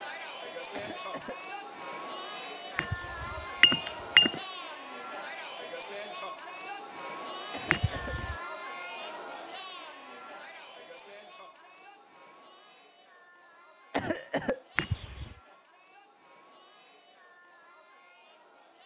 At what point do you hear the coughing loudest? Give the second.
14 s.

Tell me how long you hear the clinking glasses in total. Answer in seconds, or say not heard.
3 s.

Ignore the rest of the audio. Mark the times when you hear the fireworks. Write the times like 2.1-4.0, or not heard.
not heard.